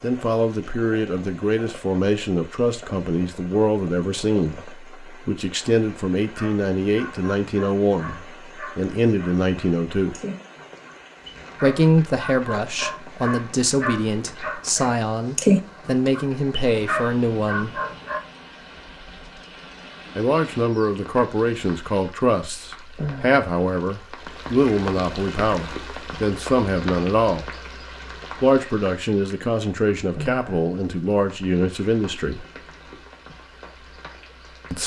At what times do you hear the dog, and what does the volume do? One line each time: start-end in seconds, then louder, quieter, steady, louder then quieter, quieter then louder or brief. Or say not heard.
6.3-18.2 louder then quieter.